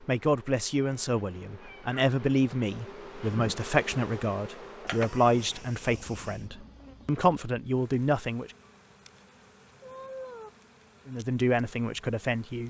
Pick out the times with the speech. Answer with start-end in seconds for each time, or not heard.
0.0-8.5, 11.1-12.6.